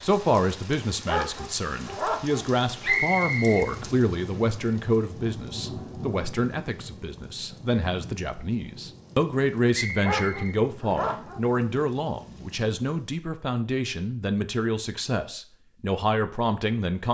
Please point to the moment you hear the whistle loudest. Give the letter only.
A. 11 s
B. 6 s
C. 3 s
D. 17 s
C.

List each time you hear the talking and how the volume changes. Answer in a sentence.
You can hear the talking from 0.0 to 17.0 s, at a steady volume.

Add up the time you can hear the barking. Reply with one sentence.
The barking can be heard for 3 seconds in total.